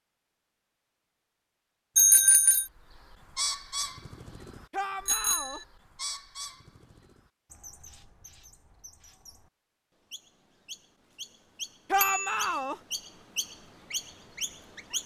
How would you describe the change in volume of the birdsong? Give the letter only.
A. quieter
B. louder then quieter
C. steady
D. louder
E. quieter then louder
E.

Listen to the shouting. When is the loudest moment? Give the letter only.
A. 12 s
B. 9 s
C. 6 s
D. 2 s
A.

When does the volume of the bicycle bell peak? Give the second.
2 s.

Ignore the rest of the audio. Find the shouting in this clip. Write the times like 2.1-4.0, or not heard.
4.7-5.6, 11.9-12.8.